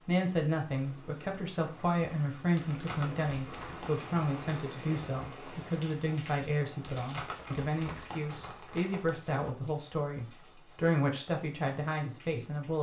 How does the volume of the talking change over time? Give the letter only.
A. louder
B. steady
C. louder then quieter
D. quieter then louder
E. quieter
B.